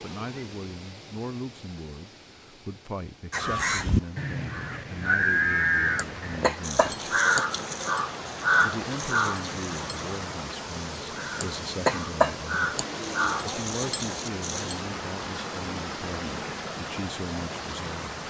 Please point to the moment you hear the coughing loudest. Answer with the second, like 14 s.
12 s.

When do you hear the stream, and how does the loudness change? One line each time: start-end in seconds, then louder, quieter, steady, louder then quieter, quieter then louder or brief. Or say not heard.
0.0-18.2 louder.